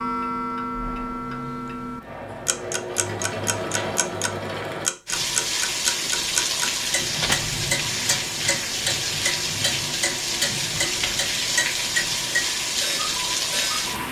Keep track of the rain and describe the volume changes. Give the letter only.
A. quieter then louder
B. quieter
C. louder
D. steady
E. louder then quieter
D.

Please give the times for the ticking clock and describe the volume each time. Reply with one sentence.
The ticking clock can be heard from 0.0 to 13.9 s, at a steady volume.